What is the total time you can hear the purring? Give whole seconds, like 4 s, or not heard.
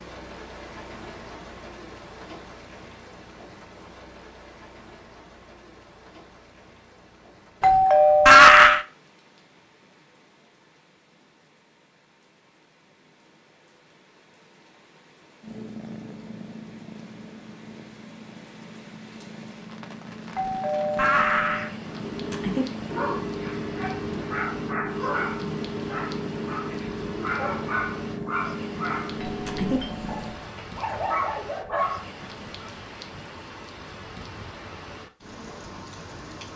15 s.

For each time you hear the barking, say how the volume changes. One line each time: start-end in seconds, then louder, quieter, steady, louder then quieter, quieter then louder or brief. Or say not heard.
21.9-32.7 steady.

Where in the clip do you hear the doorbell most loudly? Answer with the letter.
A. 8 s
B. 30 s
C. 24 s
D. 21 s
A.